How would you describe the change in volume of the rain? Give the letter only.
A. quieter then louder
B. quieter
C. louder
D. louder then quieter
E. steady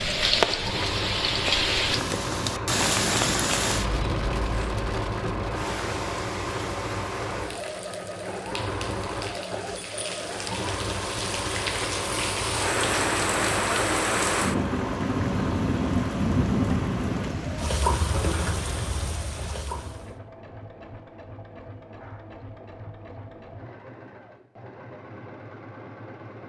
A.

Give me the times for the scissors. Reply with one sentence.
You can't hear the scissors here.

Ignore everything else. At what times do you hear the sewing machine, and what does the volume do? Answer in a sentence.
You can hear the sewing machine from 0.0 to 26.4 s, getting quieter.